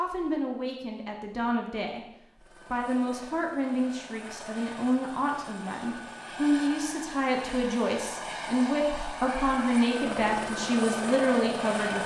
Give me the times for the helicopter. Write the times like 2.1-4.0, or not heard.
2.4-12.0.